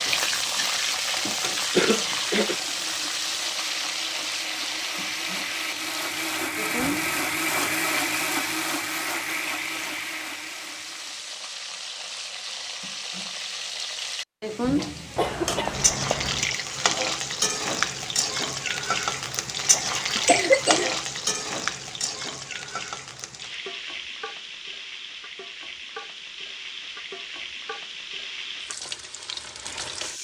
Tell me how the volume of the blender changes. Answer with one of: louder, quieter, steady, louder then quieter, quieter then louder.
louder then quieter.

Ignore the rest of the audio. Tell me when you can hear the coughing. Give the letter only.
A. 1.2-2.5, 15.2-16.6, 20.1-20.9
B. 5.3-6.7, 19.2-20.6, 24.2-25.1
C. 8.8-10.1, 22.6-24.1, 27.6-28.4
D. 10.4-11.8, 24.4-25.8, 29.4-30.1
A.